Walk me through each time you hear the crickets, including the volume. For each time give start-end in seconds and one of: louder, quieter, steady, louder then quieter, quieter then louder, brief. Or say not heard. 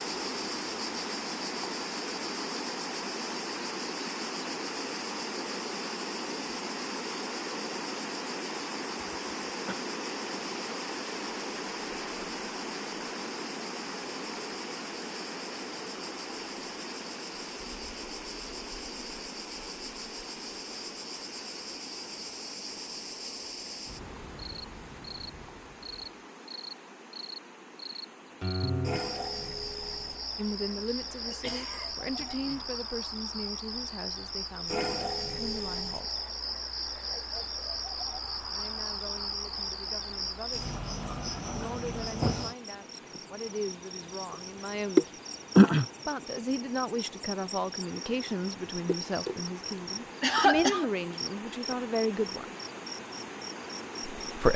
0.0-54.5 louder.